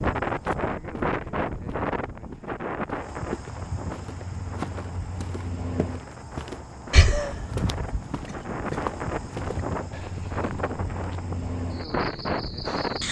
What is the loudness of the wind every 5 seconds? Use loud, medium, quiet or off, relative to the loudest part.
loud, medium, loud.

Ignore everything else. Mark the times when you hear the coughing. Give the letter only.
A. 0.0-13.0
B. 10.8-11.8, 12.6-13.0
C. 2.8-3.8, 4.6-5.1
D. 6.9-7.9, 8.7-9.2
D.